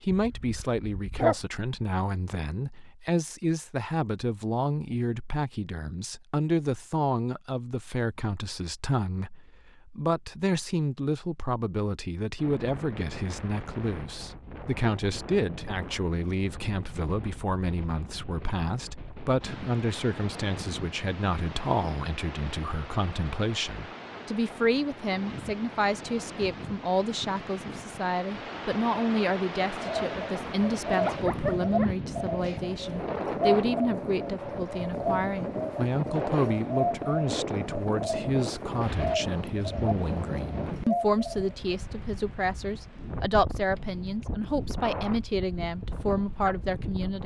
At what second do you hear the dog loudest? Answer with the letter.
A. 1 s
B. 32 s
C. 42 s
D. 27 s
A.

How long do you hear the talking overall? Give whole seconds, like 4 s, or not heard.
47 s.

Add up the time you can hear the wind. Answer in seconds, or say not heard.
35 s.